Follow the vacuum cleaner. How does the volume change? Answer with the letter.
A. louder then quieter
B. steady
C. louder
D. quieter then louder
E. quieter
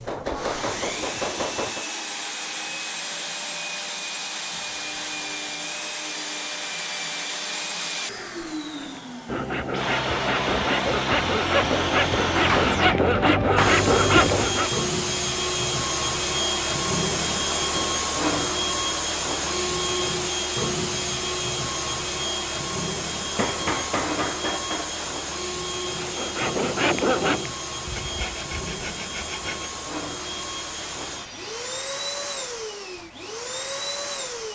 A.